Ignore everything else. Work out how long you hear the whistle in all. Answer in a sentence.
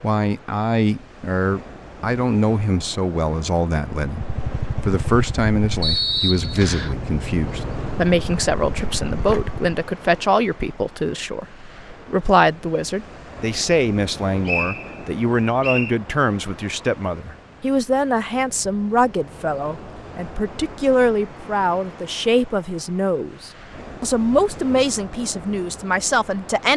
You can hear the whistle for 3 seconds altogether.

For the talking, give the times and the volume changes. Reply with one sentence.
You can hear the talking from 0.0 to 26.7 s, at a steady volume.